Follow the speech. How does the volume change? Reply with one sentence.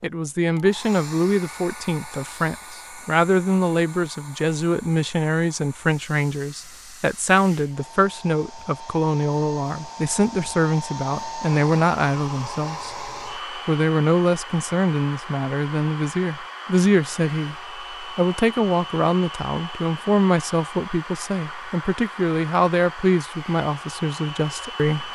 The volume of the speech stays about the same.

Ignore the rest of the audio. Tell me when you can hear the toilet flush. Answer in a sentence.
You can't hear the toilet flush here.